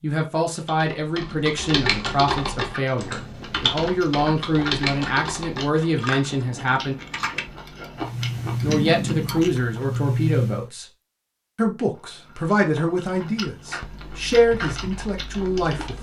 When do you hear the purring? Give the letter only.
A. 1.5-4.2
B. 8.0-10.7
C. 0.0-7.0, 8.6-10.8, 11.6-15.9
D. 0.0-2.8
B.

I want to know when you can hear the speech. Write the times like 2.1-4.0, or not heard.
0.0-7.0, 8.6-10.8, 11.6-15.9.